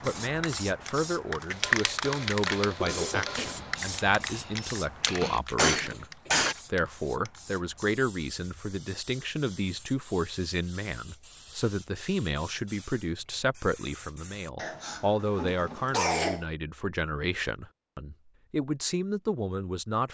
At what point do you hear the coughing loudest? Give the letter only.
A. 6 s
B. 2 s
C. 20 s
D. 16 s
D.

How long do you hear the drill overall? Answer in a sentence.
The drill can't be heard in this clip.